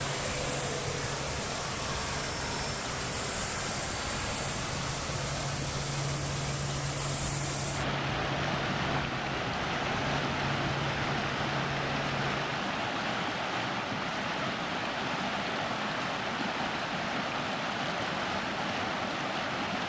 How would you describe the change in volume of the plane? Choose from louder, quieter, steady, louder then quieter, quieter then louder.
steady.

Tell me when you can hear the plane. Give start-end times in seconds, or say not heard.
0.0-12.7.